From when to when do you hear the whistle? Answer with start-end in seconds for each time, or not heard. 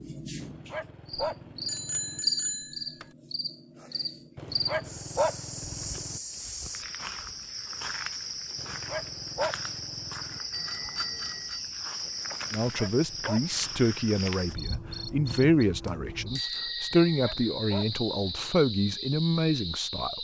not heard.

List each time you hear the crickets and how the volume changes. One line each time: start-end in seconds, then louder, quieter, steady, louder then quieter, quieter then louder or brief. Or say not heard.
0.0-20.1 steady.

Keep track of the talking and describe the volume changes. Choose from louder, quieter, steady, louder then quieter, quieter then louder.
steady.